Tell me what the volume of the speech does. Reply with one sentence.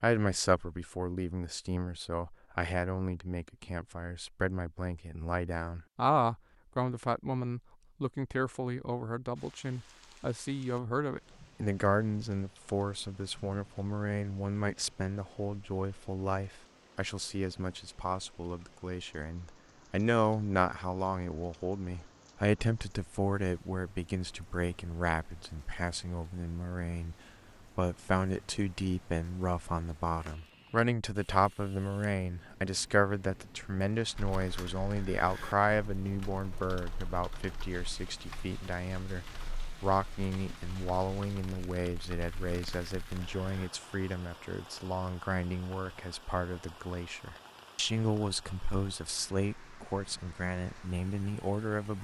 The loudness of the speech stays about the same.